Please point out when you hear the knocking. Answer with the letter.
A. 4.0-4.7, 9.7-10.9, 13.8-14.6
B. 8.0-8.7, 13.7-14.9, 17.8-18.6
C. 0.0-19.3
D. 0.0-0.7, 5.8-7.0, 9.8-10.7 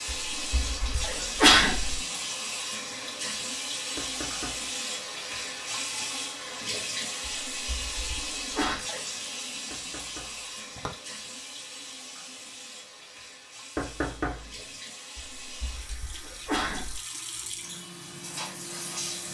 A.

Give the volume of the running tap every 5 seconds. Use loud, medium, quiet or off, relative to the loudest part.
loud, loud, medium, medium.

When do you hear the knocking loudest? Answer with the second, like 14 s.
14 s.